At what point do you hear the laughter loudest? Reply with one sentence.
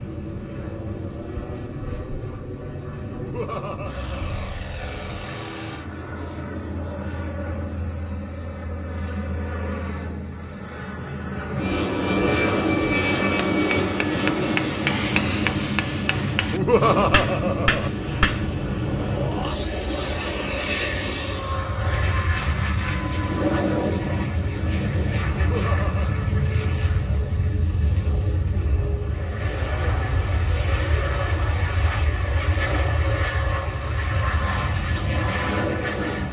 The volume of the laughter peaks at 17 seconds.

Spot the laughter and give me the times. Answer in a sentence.
The laughter can be heard from 3.1 to 4.5 s, from 16.5 to 17.9 s and from 25.4 to 26.1 s.